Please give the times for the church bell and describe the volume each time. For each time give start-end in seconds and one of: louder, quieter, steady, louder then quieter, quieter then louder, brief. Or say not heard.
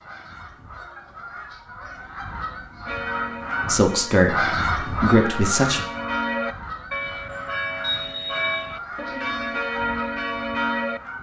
2.9-11.0 louder.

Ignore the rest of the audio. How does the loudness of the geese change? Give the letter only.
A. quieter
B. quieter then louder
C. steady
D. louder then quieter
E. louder
D.